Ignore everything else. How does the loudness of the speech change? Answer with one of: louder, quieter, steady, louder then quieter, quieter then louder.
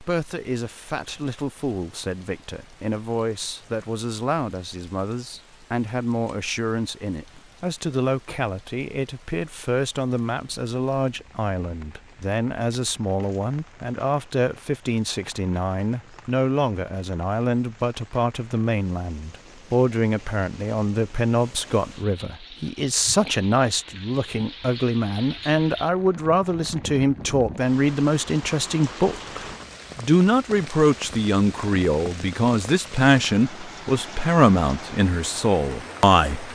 louder.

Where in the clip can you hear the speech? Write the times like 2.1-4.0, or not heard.
0.0-36.5.